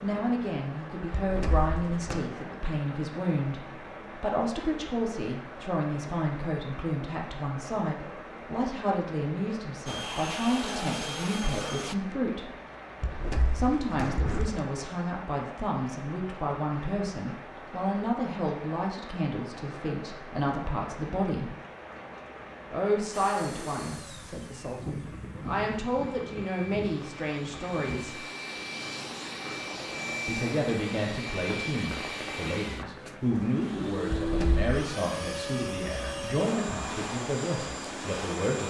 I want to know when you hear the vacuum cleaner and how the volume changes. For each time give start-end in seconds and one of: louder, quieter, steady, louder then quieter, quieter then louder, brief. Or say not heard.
9.8-11.9 brief
23.1-38.6 louder.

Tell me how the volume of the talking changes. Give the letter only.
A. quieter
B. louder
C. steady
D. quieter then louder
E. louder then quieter
C.